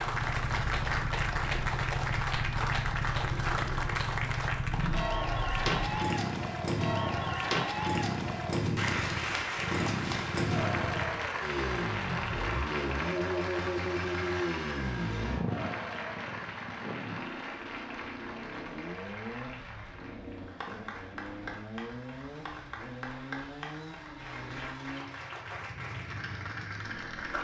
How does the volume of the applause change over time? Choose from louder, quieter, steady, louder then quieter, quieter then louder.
quieter.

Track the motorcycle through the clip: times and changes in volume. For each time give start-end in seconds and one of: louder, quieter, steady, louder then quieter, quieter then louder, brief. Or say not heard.
0.0-27.3 quieter.